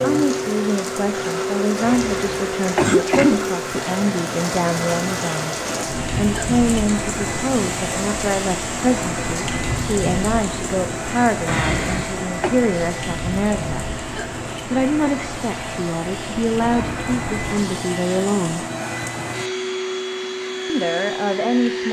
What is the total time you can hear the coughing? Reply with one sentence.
The coughing can be heard for 3 seconds in total.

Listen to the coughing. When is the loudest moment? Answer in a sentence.
The volume of the coughing peaks at 3 seconds.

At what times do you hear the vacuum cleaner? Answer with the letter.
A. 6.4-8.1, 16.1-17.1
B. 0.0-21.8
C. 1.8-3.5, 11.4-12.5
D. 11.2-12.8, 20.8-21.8
B.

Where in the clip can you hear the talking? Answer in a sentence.
You can hear the talking from 0.0 to 5.5 s, from 6.2 to 13.8 s, from 14.7 to 18.6 s and from 20.6 to 21.8 s.